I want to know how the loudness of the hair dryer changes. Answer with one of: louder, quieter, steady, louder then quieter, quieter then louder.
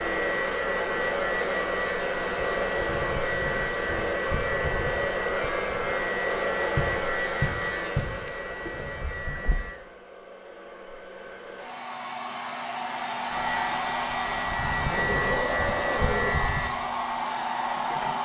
quieter then louder.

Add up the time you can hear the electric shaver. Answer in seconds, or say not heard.
13 s.